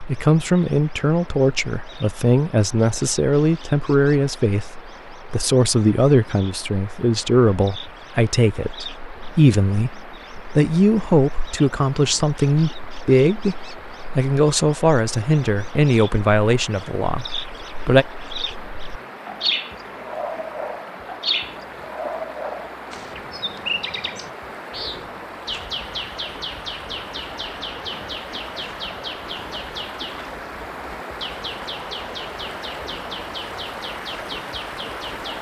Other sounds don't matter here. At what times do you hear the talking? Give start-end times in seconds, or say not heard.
0.1-13.6, 14.2-18.1.